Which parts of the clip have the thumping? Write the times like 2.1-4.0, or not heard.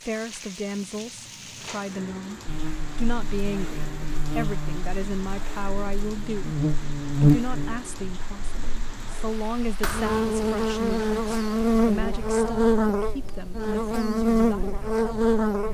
9.8-10.3.